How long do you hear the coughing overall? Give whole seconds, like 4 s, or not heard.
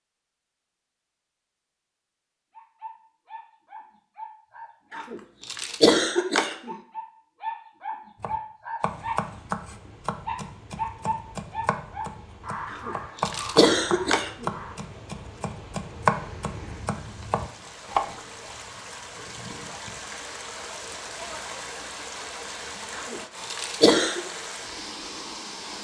5 s.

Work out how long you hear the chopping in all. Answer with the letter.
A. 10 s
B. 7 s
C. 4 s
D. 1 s
A.